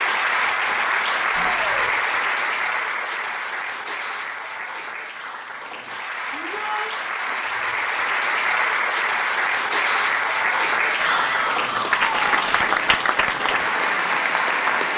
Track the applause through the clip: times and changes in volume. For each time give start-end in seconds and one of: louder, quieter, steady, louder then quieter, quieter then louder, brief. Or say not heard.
0.0-14.9 quieter then louder.